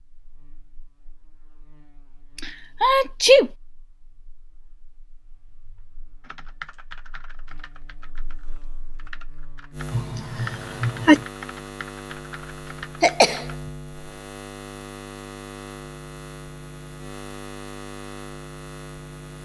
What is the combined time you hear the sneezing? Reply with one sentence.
You can hear the sneezing for 3 seconds altogether.